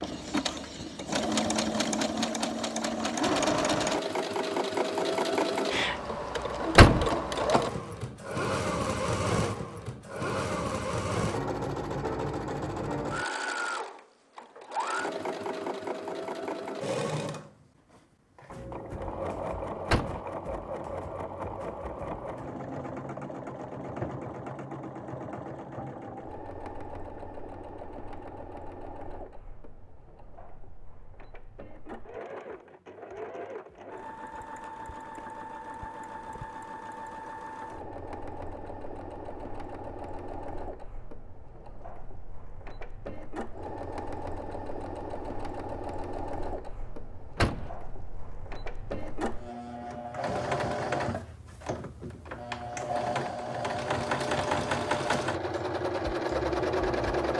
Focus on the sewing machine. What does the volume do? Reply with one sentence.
The volume of the sewing machine goes down, then up.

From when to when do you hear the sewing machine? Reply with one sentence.
The sewing machine can be heard from 0.0 to 57.3 s.